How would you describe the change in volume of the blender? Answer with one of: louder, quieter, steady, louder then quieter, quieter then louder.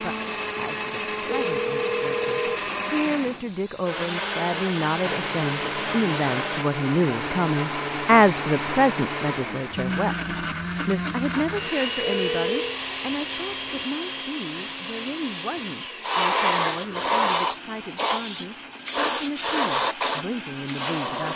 quieter.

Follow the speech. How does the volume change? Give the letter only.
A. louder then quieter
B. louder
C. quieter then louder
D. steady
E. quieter
A.